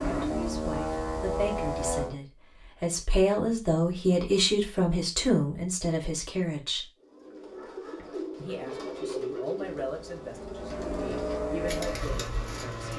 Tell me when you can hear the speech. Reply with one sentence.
The speech can be heard from 0.0 to 6.9 s and from 8.3 to 12.9 s.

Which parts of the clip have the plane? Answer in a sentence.
You can hear the plane from 0.0 to 2.1 s and from 9.6 to 12.9 s.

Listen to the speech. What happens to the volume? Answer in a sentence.
The loudness of the speech goes up, then down.